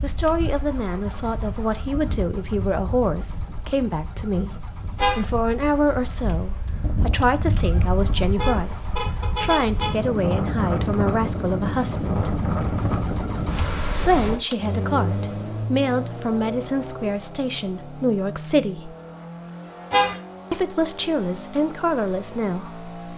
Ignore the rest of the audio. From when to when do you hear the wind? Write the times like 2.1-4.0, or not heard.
0.0-14.4.